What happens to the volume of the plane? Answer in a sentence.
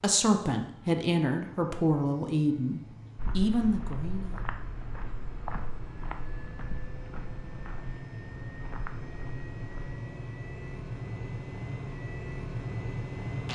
The volume of the plane goes up.